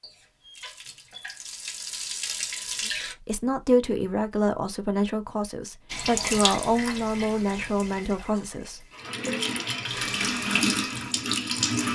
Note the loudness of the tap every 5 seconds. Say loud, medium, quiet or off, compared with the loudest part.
medium, medium, loud.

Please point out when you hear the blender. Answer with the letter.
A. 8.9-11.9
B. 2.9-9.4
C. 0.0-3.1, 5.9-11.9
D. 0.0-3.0
A.